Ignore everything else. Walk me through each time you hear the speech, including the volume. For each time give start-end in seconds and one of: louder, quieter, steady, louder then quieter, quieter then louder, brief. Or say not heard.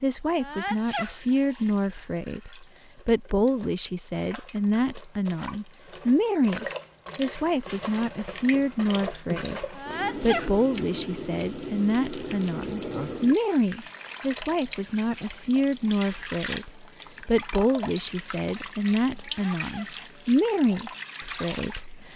0.0-22.1 steady.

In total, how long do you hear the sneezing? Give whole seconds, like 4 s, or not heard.
2 s.